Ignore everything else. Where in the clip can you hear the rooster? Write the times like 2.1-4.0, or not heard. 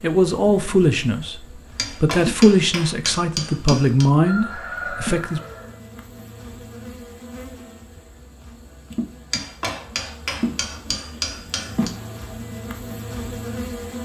4.2-5.8.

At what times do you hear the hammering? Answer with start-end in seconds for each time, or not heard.
1.8-4.0, 9.3-11.9.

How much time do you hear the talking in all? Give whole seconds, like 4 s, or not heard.
5 s.